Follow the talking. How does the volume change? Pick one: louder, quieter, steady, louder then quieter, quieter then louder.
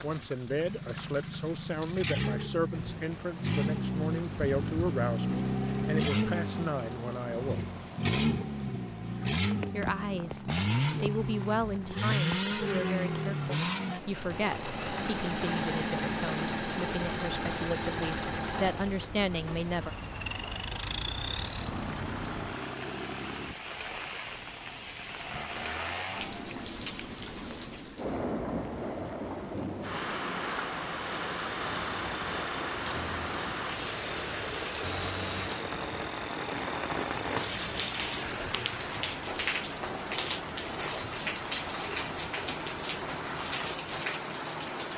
steady.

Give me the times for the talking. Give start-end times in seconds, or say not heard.
0.0-7.7, 9.7-19.9.